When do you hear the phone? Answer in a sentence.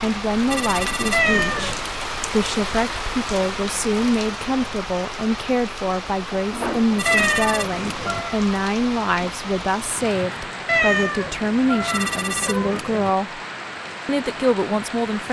You can hear the phone from 0.5 to 1.8 s, from 7.0 to 8.2 s and from 11.8 to 13.1 s.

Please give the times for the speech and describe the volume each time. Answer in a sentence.
The speech can be heard from 0.0 to 13.4 s, at a steady volume; and briefly from 14.1 to 15.2 s.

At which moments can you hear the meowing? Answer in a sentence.
The meowing can be heard from 1.1 to 1.9 s, from 7.0 to 8.3 s and from 10.7 to 12.8 s.